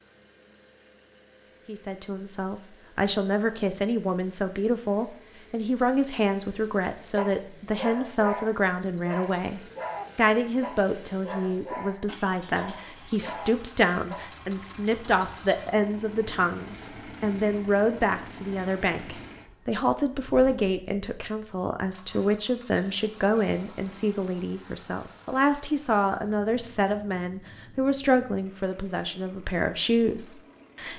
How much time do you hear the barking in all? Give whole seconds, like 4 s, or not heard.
7 s.